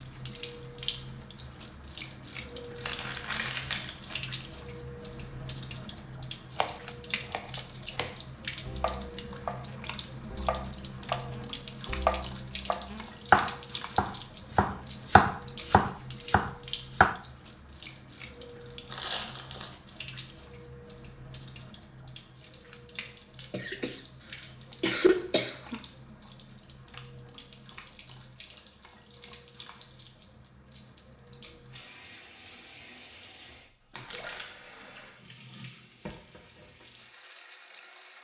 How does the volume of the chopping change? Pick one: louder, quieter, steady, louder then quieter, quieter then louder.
louder.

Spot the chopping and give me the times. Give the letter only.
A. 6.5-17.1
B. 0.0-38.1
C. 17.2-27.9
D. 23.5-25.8
A.